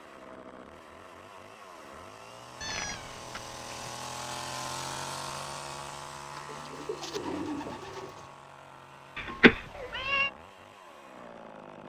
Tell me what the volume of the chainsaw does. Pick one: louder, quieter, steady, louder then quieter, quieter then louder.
louder then quieter.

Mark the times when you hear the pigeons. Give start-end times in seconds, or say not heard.
6.3-8.3.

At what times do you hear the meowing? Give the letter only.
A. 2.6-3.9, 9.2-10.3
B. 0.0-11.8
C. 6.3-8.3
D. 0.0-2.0
A.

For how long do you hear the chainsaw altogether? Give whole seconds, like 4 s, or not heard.
12 s.